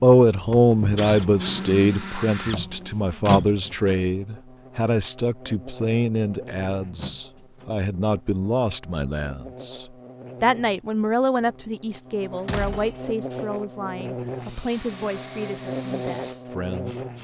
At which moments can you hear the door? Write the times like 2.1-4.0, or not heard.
3.2-4.0, 7.0-8.1, 11.9-13.1.